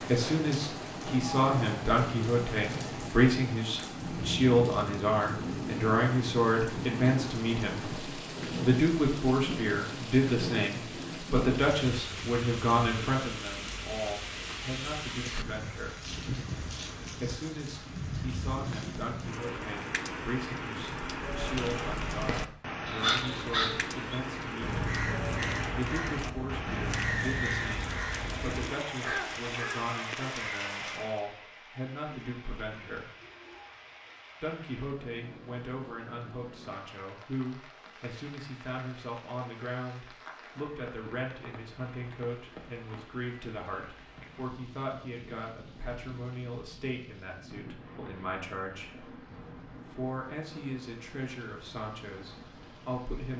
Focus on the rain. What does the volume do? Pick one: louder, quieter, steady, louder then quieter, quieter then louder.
quieter.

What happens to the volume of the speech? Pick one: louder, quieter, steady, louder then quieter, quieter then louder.
quieter.